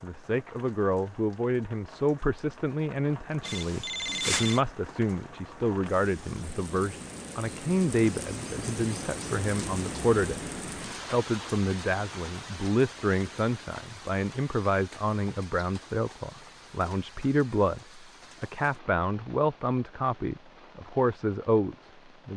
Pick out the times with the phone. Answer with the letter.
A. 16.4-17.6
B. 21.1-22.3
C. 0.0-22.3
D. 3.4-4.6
D.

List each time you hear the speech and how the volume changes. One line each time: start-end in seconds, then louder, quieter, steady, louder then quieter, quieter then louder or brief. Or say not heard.
0.0-22.3 steady.